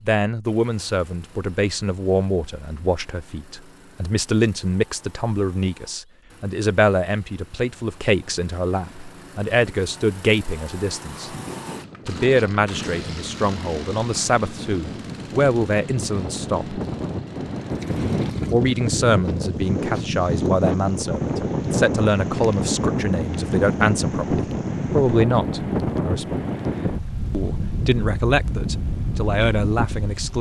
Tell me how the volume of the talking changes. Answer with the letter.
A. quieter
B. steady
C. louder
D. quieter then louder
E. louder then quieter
B.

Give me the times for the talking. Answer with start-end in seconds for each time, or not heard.
0.0-11.3, 12.1-16.8, 18.5-26.4, 27.3-30.3.